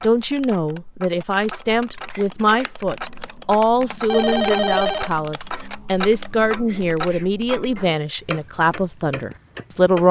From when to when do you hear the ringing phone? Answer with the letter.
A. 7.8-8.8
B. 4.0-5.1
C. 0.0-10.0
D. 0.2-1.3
B.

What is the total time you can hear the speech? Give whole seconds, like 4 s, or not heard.
10 s.